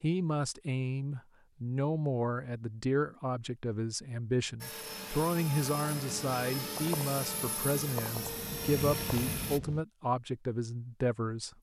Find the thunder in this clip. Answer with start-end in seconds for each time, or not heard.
8.2-9.8.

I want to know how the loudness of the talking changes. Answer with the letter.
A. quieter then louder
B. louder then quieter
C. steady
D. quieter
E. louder
C.